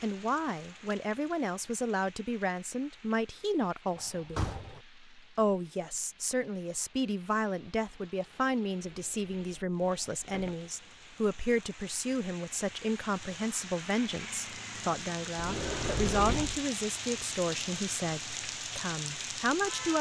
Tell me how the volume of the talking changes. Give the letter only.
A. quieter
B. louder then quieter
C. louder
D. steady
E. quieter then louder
D.